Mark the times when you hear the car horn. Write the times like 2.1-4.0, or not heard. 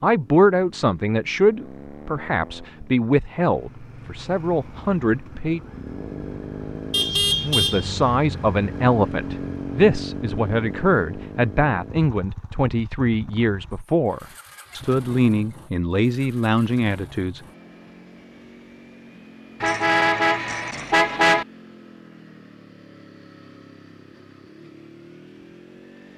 6.9-8.0, 19.6-21.4.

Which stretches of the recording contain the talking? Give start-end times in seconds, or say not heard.
0.0-5.6, 7.4-17.4.